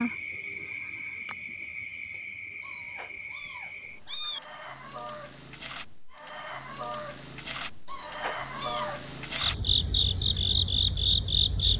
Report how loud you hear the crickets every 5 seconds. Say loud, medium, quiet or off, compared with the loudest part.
medium, loud, loud.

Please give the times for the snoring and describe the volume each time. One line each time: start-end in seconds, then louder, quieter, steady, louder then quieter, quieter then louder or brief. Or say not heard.
not heard.